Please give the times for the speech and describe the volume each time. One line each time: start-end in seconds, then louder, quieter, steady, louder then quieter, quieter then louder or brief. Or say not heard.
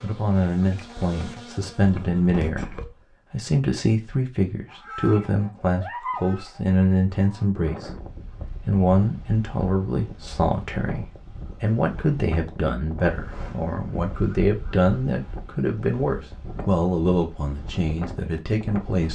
0.0-19.1 steady.